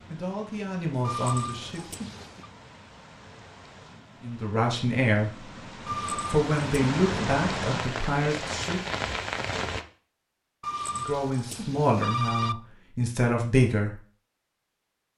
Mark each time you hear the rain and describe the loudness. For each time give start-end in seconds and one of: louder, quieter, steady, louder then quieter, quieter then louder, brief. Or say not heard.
0.0-9.8 louder.